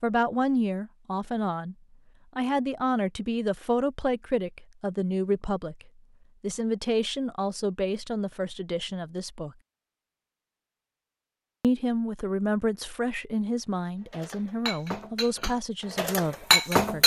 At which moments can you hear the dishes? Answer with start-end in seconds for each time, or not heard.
14.1-17.0.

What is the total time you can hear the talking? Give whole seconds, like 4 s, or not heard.
14 s.